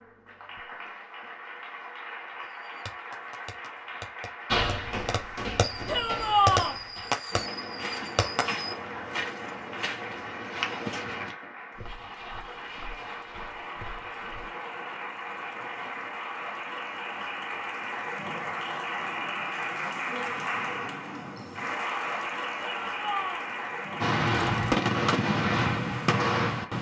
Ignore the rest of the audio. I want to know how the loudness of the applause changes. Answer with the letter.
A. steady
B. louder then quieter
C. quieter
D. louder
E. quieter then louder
D.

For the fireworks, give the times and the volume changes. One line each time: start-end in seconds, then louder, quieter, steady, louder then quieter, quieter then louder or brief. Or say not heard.
2.4-8.8 louder then quieter
24.0-26.7 brief.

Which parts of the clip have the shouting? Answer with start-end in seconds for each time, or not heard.
5.8-6.8, 22.6-23.5.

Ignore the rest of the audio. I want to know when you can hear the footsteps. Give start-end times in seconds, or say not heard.
4.5-14.4.